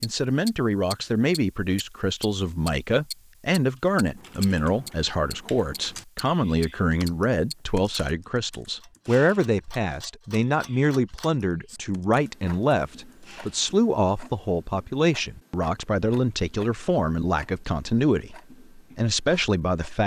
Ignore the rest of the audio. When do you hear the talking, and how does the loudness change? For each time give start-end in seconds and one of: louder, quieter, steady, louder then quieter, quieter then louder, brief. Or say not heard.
0.0-20.0 steady.